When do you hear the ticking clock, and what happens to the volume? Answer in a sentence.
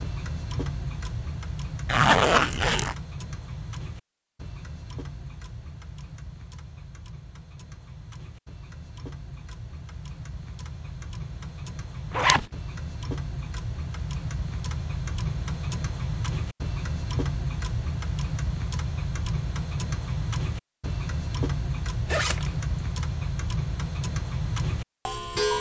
You can hear the ticking clock from 0.0 to 25.5 s, getting quieter then louder.